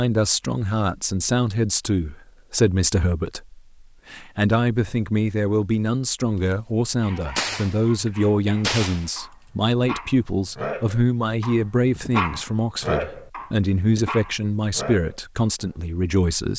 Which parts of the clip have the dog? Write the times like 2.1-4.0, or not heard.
7.0-15.8.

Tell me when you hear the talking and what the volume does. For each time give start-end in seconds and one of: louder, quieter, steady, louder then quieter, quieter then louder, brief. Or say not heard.
0.0-16.5 steady.